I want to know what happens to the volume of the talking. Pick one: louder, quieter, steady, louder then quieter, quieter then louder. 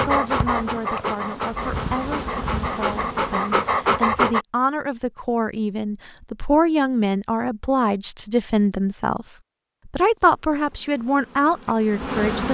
louder.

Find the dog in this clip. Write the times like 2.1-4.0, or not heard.
0.0-4.5.